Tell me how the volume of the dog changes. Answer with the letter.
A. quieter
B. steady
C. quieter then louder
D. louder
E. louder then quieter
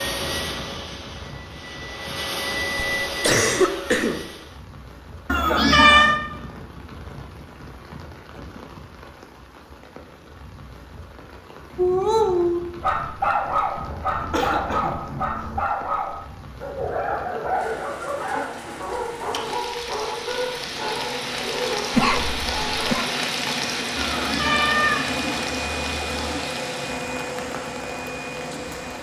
A.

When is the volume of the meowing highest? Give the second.
6 s.